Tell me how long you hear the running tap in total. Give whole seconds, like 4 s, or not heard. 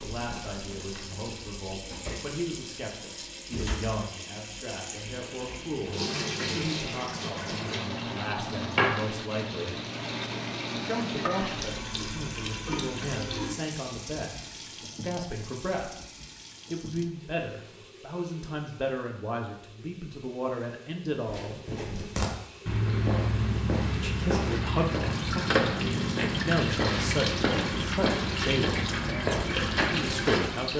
31 s.